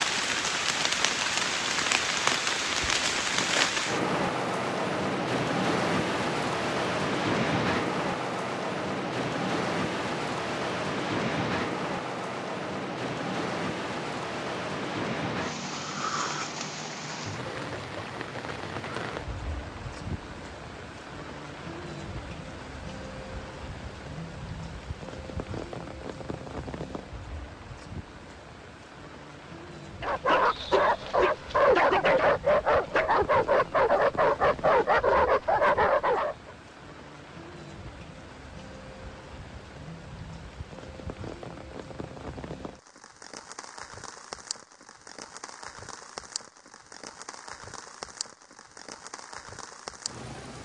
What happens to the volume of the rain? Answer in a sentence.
The loudness of the rain goes down.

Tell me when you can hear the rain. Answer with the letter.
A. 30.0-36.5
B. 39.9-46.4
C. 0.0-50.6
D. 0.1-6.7
C.